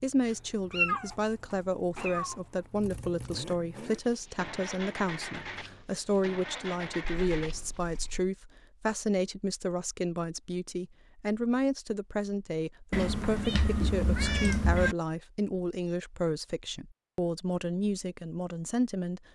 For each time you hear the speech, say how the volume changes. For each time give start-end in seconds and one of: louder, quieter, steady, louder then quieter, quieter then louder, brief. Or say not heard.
0.0-19.3 steady.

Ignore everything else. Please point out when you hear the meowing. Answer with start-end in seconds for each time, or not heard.
0.7-2.4, 7.0-8.3, 12.9-14.9.